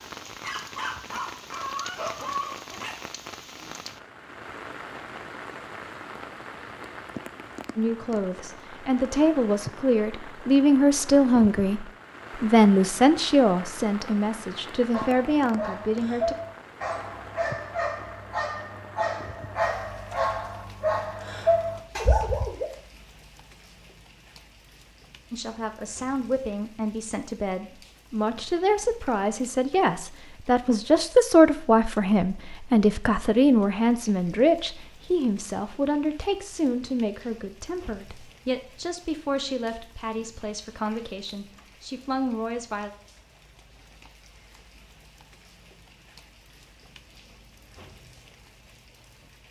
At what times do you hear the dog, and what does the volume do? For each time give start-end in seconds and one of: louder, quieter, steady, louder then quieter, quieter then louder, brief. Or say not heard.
0.0-3.0 brief
14.9-22.6 louder.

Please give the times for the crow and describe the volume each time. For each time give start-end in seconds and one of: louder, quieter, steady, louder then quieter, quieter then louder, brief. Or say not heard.
not heard.